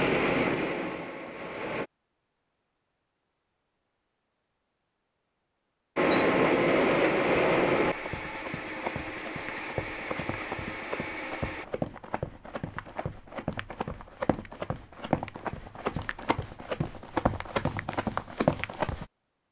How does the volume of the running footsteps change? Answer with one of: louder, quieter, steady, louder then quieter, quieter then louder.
louder.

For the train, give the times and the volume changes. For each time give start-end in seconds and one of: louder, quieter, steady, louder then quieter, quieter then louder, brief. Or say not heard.
0.0-1.9 brief
6.0-11.7 quieter.